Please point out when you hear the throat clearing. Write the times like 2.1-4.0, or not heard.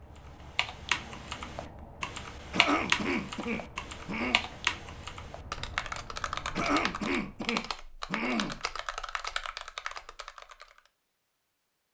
2.5-4.4, 6.5-8.6.